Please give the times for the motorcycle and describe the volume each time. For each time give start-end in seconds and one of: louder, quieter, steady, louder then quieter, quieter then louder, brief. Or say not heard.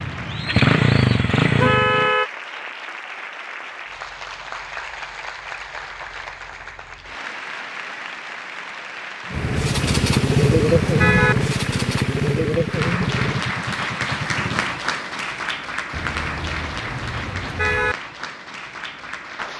0.0-2.1 brief
9.3-14.8 quieter.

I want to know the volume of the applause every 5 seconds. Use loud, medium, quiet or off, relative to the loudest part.
medium, medium, loud, loud.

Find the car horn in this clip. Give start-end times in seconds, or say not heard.
1.6-2.3, 9.3-11.3, 15.9-17.9.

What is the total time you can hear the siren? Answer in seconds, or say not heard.
not heard.